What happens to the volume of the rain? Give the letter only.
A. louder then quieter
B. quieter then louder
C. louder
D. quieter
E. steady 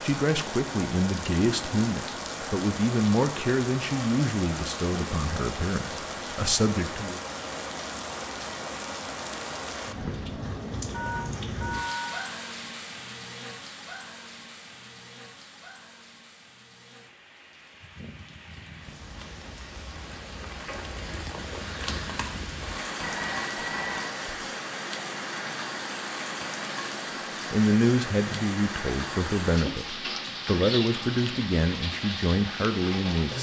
B.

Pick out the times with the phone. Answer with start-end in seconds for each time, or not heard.
10.9-12.2, 23.0-24.2.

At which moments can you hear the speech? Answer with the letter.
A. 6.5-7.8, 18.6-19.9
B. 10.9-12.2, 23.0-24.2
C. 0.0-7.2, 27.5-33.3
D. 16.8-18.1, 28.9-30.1
C.